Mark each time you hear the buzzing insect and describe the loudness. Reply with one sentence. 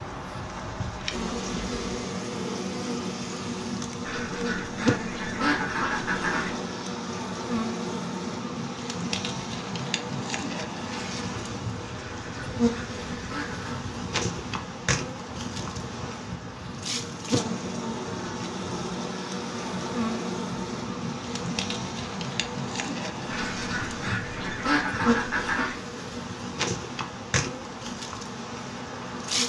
The buzzing insect can be heard from 0.0 to 29.4 s, at a steady volume.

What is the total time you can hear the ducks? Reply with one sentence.
The ducks can be heard for 7 seconds in total.